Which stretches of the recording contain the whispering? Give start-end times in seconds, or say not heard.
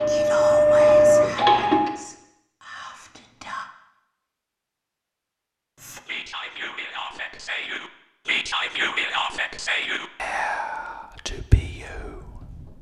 0.0-3.7, 5.8-12.7.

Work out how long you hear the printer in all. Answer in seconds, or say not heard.
2 s.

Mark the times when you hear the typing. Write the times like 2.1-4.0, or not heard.
not heard.